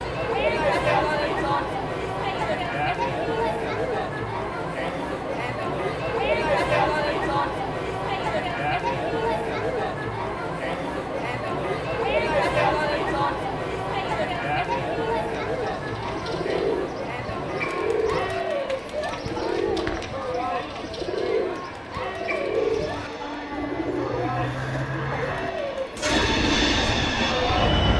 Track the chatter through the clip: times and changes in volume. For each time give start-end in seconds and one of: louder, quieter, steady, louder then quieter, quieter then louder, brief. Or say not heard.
0.0-27.8 quieter.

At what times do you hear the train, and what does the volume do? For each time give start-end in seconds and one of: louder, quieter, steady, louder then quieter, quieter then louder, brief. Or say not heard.
22.6-27.9 quieter then louder.